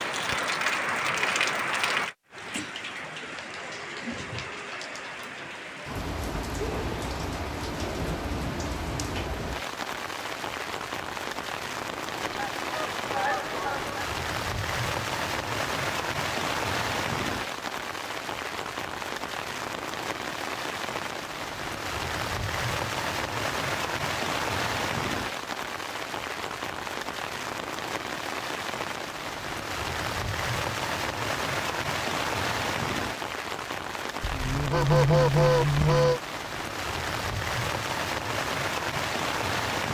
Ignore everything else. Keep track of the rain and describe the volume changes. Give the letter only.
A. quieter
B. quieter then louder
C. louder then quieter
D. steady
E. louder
D.